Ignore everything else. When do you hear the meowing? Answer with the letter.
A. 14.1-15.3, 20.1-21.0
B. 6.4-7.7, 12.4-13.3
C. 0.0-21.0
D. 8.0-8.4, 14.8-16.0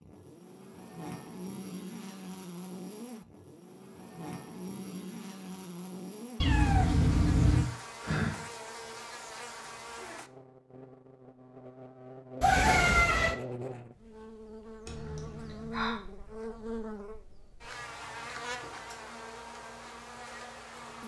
B.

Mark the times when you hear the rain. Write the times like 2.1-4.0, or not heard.
not heard.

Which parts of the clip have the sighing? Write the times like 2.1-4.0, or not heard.
8.0-8.4, 14.8-16.0.